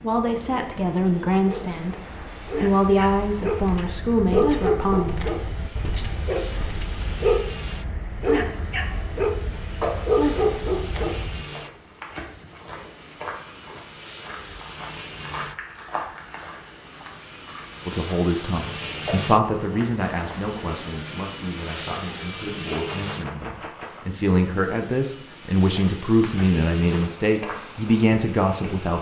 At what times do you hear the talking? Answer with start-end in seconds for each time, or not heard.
0.0-6.0, 17.9-28.9.